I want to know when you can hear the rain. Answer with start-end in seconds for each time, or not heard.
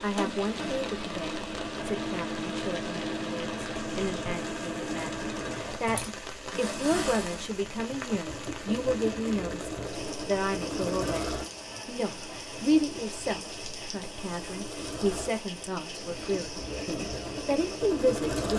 0.0-18.5.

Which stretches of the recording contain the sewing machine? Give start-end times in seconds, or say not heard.
0.0-18.5.